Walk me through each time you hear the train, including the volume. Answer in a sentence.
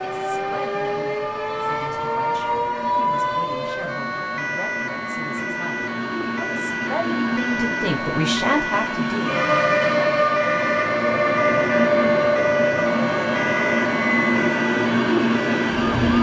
You can hear the train from 0.0 to 16.1 s, getting louder.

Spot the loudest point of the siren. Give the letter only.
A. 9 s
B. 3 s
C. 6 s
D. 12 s
B.